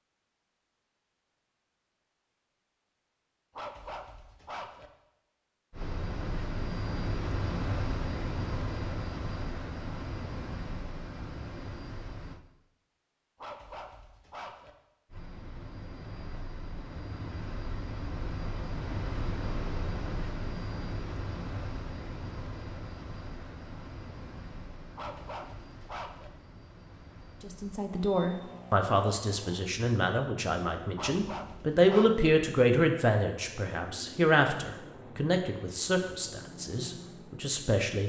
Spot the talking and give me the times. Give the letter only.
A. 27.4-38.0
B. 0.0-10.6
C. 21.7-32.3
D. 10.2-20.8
A.